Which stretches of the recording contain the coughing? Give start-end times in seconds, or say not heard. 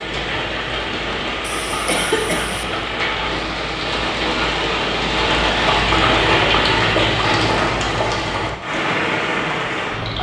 1.4-2.6.